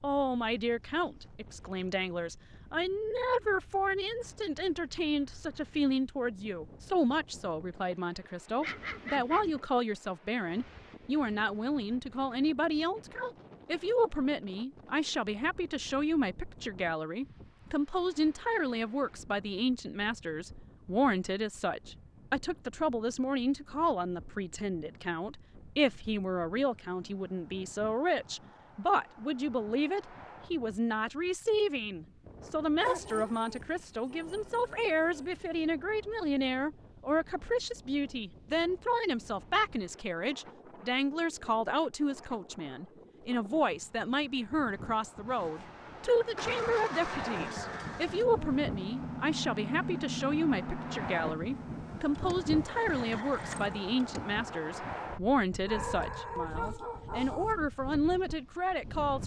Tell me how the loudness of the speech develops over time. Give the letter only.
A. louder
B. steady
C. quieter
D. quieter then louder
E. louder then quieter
B.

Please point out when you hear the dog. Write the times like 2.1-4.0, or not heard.
8.6-9.5, 32.8-35.5, 55.6-57.5.